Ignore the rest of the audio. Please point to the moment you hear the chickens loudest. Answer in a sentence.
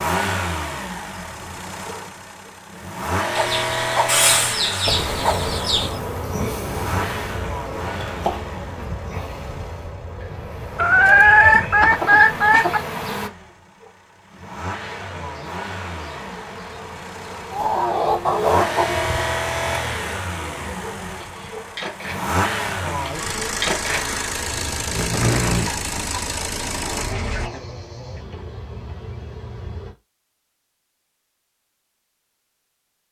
The volume of the chickens peaks at 11 seconds.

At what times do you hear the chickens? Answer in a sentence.
The chickens can be heard from 3.4 to 5.9 s, from 10.8 to 12.8 s, from 17.5 to 19.2 s and from 25.8 to 27.6 s.